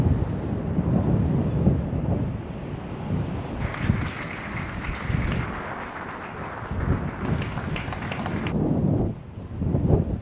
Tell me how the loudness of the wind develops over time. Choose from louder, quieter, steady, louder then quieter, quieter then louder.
quieter then louder.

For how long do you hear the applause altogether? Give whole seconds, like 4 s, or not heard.
5 s.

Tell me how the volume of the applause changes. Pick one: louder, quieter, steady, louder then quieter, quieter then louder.
steady.